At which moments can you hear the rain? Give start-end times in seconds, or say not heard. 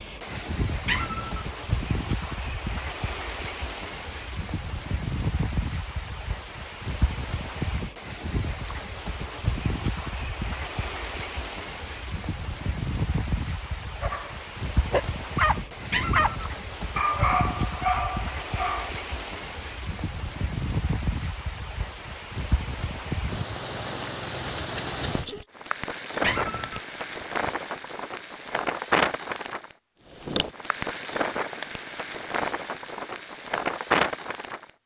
0.0-34.7.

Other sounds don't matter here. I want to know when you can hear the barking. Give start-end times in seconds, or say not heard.
14.0-18.9.